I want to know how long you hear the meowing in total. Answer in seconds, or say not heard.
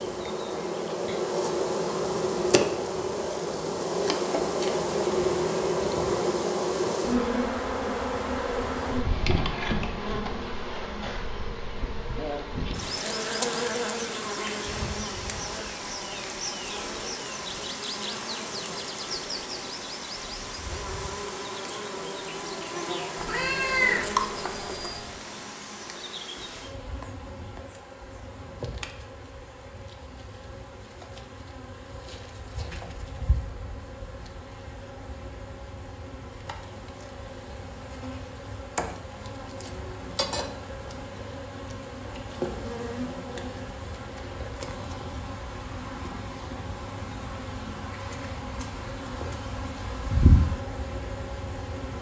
2 s.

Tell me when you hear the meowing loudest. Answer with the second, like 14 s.
24 s.